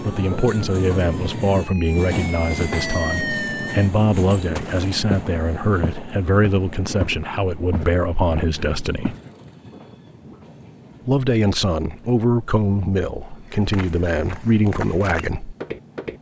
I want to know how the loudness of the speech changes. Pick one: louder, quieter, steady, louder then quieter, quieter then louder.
steady.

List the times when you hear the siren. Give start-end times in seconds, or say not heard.
0.1-3.9.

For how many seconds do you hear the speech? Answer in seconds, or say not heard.
14 s.